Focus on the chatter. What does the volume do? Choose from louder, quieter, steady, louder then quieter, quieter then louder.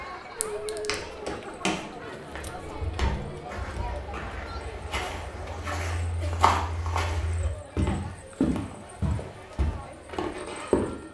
quieter.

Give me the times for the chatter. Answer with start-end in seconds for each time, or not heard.
0.0-11.0.